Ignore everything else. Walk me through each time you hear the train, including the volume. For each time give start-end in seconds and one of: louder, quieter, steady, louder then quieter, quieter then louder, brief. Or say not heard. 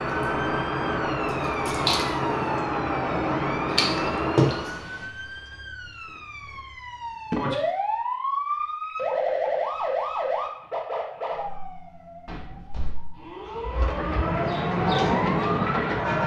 0.0-4.8 steady
13.7-16.2 brief.